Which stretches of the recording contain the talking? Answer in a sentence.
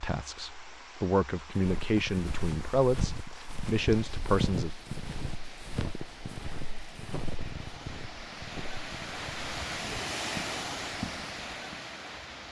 The talking can be heard from 0.0 to 4.7 s.